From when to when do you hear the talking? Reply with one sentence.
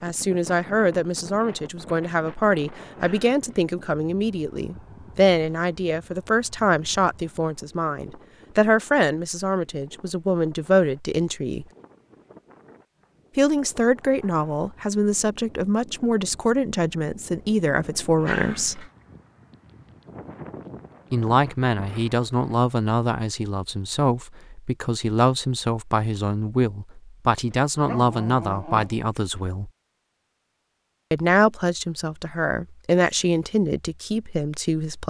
You can hear the talking from 0.0 to 11.7 s, from 13.3 to 18.9 s, from 21.1 to 29.7 s and from 31.1 to 35.0 s.